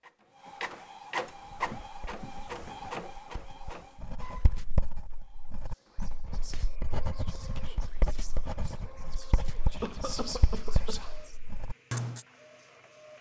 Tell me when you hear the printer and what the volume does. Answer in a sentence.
You can hear the printer from 0.0 to 13.1 s, getting quieter.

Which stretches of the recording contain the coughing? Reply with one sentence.
The coughing can be heard from 9.8 to 11.1 s.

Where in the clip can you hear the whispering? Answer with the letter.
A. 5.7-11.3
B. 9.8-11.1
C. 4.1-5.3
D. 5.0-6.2
A.